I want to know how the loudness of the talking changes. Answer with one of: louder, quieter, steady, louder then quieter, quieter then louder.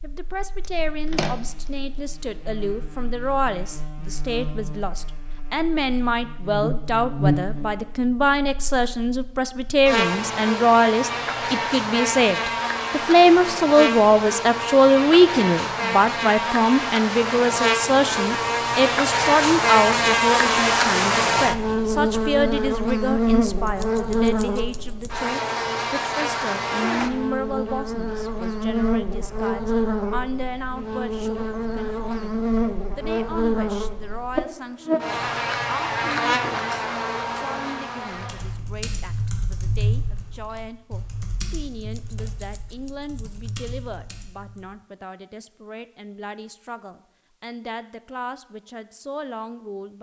louder then quieter.